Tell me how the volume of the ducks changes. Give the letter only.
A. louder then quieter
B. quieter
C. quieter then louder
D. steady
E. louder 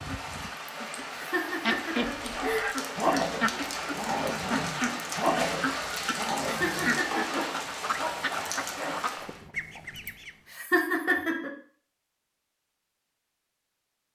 D.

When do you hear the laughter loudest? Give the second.
11 s.